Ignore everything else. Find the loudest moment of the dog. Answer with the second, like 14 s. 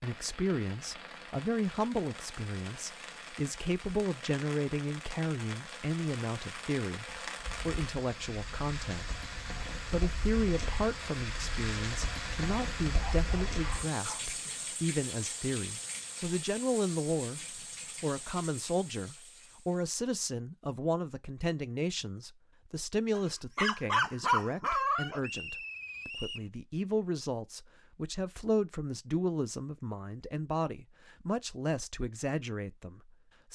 24 s.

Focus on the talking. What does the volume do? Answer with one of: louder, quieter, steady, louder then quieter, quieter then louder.
steady.